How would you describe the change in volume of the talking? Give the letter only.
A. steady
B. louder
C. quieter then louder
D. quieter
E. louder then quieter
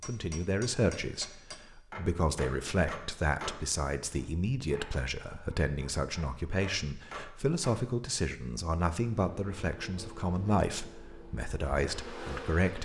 A.